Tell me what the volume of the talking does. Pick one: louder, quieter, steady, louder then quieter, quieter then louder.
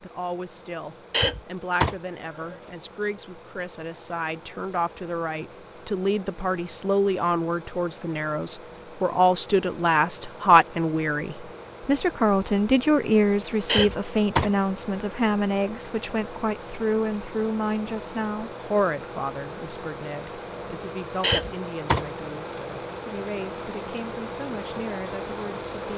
louder then quieter.